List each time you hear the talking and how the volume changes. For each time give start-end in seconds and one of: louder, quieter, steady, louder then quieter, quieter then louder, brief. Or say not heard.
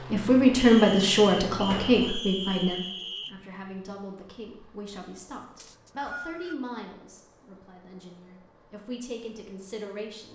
0.1-10.2 quieter.